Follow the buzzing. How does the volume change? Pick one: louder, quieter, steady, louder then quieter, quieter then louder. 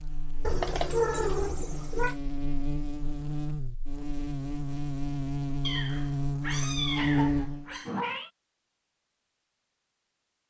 louder.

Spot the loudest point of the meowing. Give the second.
1 s.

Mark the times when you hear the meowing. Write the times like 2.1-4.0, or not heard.
0.5-2.1, 5.6-8.3.